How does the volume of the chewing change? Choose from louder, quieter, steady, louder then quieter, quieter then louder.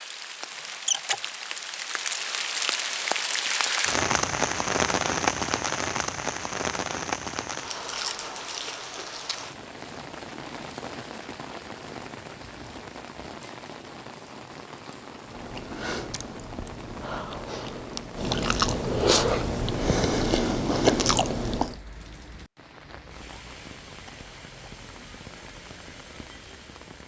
louder.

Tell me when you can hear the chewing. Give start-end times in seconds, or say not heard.
15.2-21.8.